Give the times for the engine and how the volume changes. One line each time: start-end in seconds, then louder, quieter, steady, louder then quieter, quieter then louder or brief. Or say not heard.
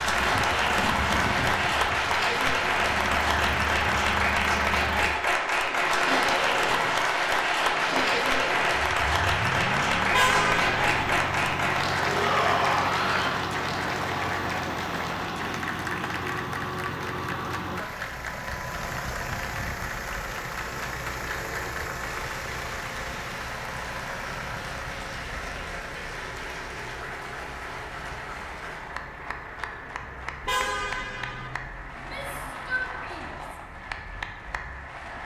0.0-35.2 quieter.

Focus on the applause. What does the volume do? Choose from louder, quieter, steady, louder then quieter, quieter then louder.
quieter.